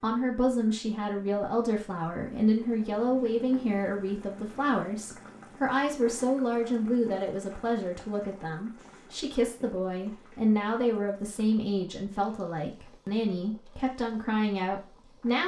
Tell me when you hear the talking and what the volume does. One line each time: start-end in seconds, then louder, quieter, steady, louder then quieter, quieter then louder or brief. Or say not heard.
0.0-15.4 steady.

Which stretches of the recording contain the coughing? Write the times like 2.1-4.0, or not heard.
not heard.